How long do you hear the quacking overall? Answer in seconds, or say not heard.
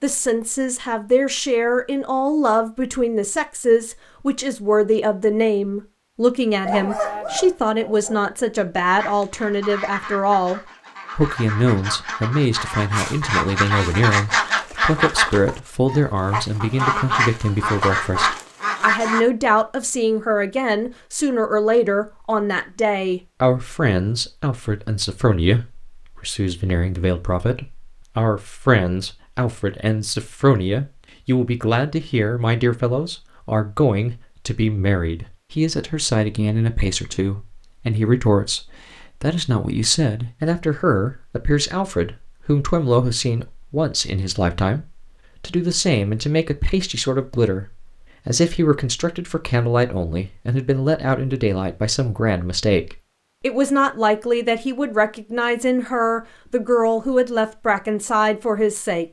10 s.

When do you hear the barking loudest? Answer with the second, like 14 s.
7 s.